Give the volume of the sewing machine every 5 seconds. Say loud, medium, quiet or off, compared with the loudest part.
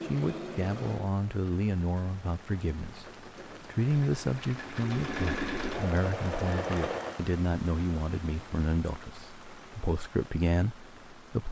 medium, loud, off.